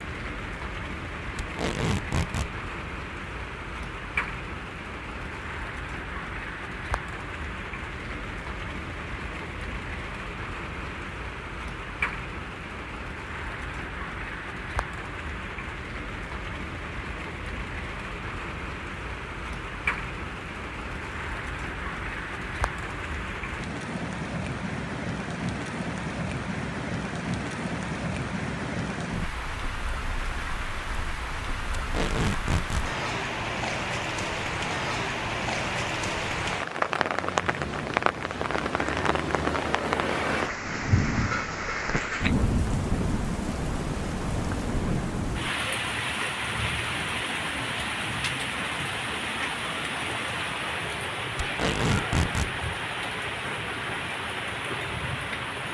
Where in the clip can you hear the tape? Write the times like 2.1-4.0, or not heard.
1.4-2.5, 31.8-32.9, 51.4-52.5.